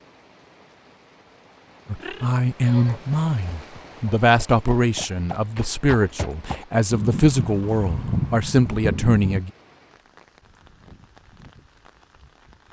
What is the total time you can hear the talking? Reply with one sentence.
You can hear the talking for 8 seconds altogether.